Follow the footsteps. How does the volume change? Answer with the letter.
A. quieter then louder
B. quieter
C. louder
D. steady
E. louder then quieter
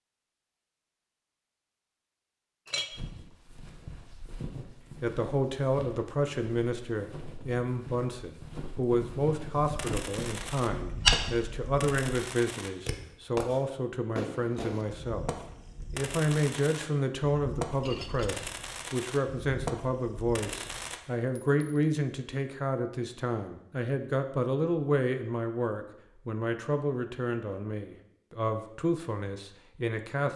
C.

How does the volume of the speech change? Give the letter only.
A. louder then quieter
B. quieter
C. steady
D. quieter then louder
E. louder
C.